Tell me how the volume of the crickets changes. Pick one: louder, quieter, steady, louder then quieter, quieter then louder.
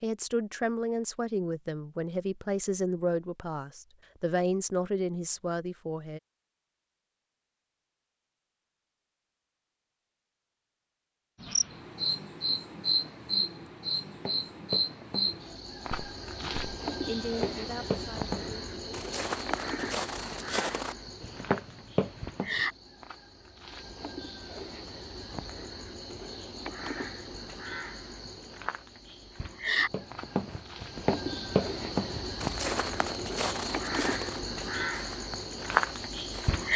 quieter then louder.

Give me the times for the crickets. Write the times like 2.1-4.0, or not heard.
11.4-36.7.